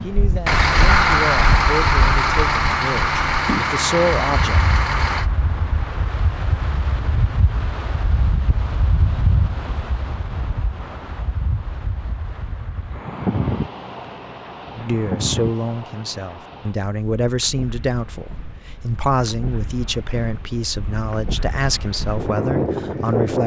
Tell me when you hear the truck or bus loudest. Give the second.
1 s.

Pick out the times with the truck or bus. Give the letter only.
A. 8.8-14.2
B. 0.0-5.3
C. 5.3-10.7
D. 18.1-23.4
B.